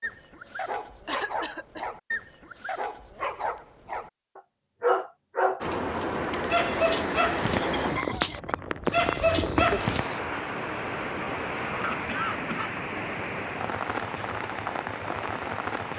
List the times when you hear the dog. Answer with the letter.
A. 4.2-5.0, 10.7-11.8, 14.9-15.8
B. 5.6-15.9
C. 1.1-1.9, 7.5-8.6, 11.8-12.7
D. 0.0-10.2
D.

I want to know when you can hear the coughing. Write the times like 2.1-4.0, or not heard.
1.1-1.9, 7.5-8.6, 11.8-12.7.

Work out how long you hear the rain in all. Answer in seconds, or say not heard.
10 s.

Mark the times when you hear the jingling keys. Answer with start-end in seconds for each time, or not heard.
not heard.